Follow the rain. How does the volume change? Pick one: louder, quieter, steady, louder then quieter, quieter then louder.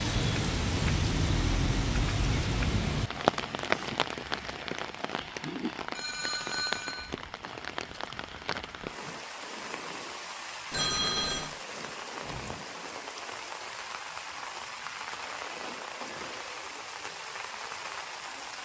quieter.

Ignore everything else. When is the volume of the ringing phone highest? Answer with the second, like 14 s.
11 s.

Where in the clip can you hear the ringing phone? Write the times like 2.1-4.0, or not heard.
6.0-7.2, 10.7-11.6.